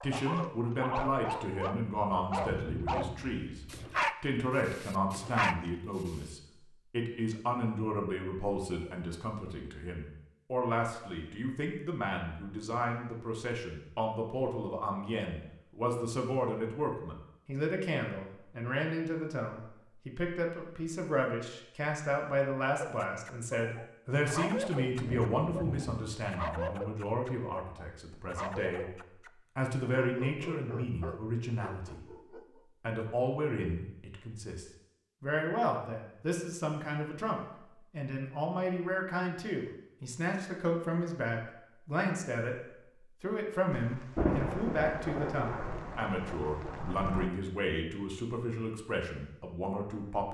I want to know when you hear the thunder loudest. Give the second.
44 s.